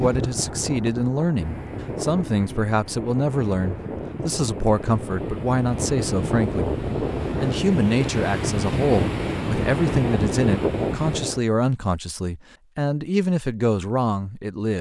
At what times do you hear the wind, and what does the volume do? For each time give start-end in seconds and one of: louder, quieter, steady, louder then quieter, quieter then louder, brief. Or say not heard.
0.0-11.4 louder.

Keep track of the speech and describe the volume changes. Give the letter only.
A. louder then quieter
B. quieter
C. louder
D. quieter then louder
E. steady
E.